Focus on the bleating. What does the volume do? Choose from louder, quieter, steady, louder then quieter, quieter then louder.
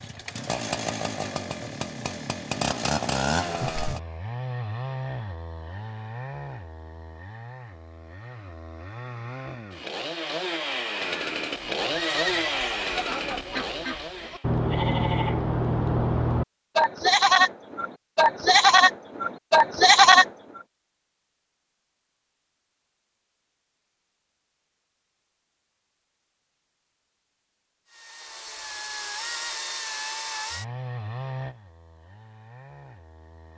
louder.